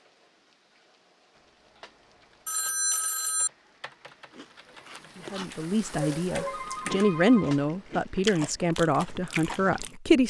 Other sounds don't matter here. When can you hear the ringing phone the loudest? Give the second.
3 s.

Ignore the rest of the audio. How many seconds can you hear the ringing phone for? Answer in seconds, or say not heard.
2 s.